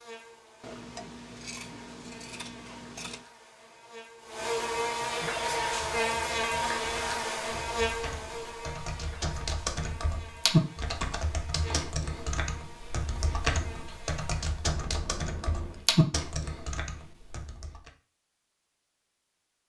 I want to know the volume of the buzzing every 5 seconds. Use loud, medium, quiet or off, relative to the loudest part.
medium, loud, quiet, off.